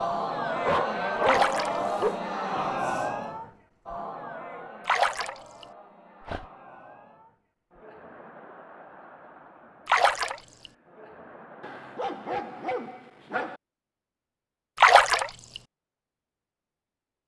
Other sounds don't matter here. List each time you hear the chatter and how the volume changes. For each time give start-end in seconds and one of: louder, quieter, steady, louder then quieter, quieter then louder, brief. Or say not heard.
0.0-12.8 quieter.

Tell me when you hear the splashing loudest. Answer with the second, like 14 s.
15 s.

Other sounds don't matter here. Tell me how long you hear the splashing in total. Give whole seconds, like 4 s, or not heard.
3 s.